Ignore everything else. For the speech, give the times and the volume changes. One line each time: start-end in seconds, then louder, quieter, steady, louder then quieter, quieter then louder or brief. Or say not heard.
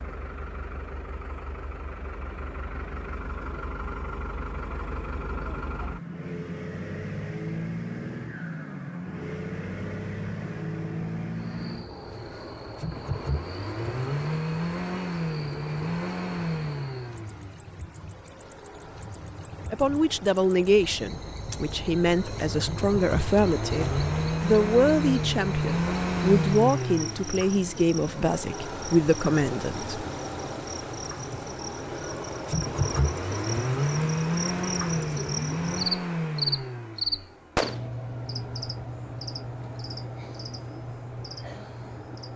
19.7-29.9 steady.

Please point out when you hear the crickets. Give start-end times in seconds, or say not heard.
11.3-42.3.